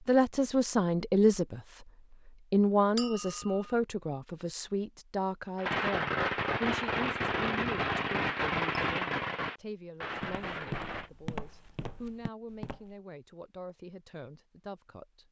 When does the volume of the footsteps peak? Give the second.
11 s.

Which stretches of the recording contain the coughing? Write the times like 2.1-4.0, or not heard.
not heard.